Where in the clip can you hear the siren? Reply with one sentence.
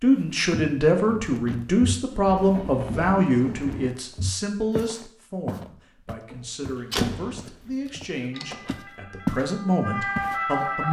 The siren can be heard from 8.3 to 10.8 s.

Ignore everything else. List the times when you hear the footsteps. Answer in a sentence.
The footsteps can be heard from 0.5 to 9.4 s and from 10.2 to 10.7 s.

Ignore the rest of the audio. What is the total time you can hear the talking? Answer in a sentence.
The talking can be heard for 11 seconds in total.